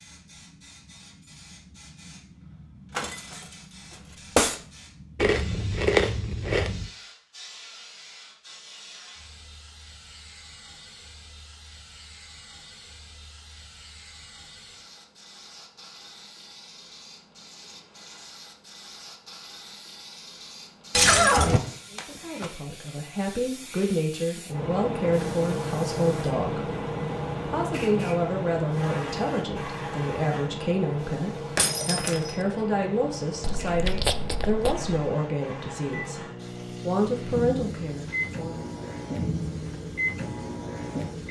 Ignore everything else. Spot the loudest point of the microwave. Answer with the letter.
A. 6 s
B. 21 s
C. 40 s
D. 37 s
C.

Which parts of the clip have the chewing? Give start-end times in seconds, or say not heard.
5.2-6.9, 33.4-34.9.